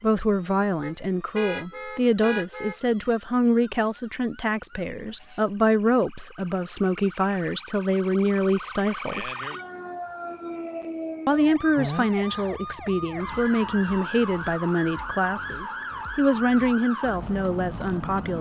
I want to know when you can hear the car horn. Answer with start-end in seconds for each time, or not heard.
0.8-2.8.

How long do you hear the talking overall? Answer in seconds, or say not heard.
16 s.